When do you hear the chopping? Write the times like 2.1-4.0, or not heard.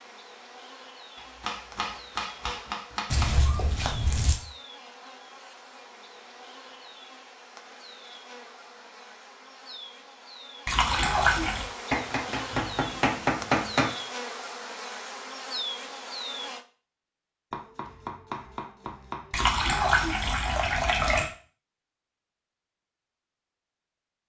1.1-3.3, 11.9-13.9, 17.5-19.6.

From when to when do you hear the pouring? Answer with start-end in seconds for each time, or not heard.
3.1-4.4, 10.7-11.7, 19.3-21.2.